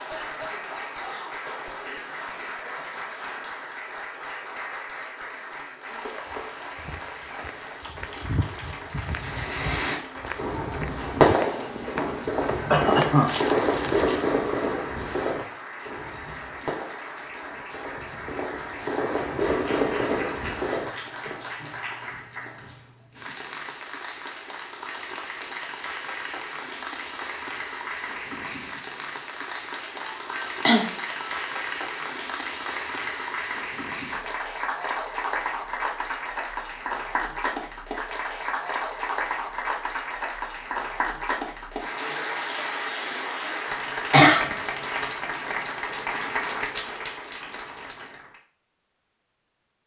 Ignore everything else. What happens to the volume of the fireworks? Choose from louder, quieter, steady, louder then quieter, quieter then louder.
quieter then louder.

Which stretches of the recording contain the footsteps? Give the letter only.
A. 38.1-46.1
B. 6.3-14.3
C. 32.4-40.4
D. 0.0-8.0
B.